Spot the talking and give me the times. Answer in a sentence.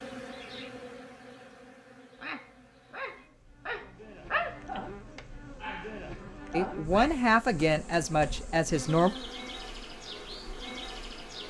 You can hear the talking from 6.5 to 9.1 s.